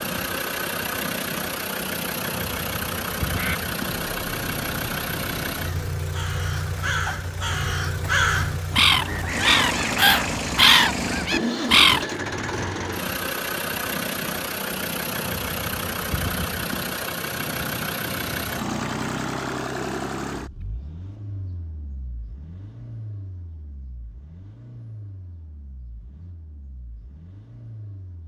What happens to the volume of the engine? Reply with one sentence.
The loudness of the engine goes down.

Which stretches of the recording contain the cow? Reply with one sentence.
You can't hear the cow here.